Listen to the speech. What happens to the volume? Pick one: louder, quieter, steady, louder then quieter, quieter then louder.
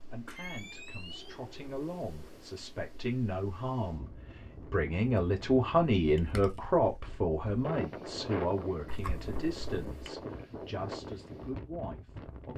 louder then quieter.